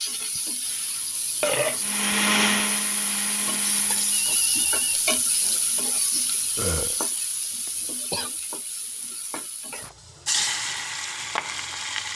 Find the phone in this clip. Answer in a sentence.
You can hear the phone from 4.1 to 5.7 s.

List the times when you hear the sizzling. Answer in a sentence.
The sizzling can be heard from 0.0 to 12.1 s.